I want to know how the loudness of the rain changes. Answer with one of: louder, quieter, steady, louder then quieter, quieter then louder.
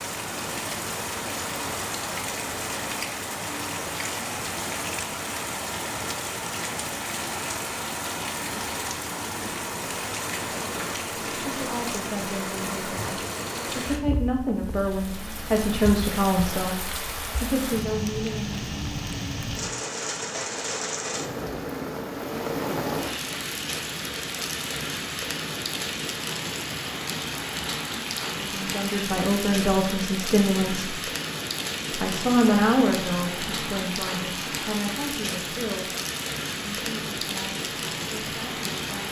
steady.